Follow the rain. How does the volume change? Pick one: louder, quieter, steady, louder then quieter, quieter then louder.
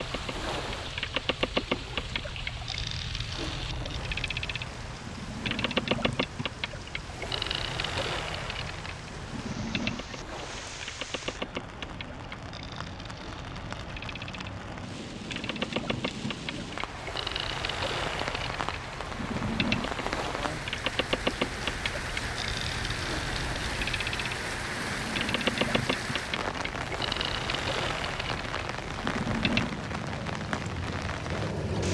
louder.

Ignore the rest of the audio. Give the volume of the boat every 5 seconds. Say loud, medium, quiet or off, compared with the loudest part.
loud, loud, medium, loud, loud, loud, loud.